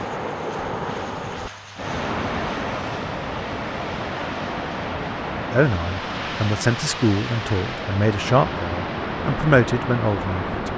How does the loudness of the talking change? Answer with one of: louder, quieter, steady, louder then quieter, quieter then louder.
quieter then louder.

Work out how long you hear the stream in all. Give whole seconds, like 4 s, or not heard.
11 s.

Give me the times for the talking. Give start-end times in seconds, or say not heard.
5.5-10.7.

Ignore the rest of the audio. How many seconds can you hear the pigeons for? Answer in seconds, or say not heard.
not heard.